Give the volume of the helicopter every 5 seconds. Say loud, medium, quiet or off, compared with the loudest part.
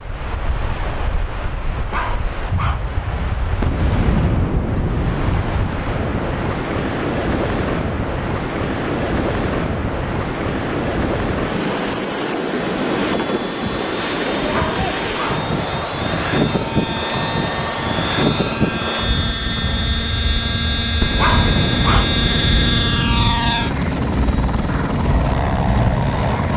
off, off, quiet, medium, loud, loud.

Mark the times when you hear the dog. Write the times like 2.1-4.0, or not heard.
1.9-2.8, 14.5-15.4, 21.1-22.1.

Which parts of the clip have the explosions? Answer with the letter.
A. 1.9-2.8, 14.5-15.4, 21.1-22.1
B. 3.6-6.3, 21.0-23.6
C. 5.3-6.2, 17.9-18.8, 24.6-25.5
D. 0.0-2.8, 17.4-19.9
B.